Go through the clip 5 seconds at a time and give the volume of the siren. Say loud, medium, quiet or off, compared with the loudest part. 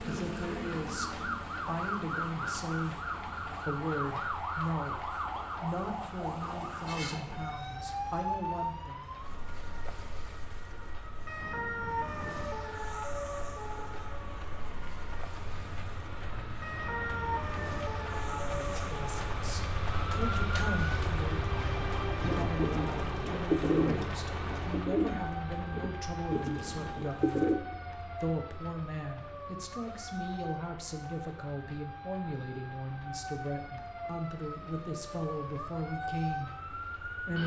loud, loud, loud, loud, loud, medium, medium, loud.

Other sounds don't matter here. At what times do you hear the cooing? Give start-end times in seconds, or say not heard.
22.1-27.6.